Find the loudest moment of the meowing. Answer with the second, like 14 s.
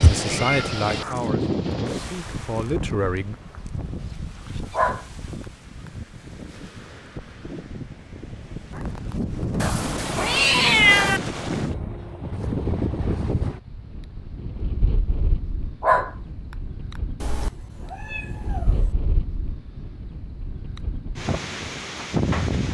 11 s.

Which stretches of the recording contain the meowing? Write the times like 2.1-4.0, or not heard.
0.0-1.2, 9.6-11.2, 17.2-18.9.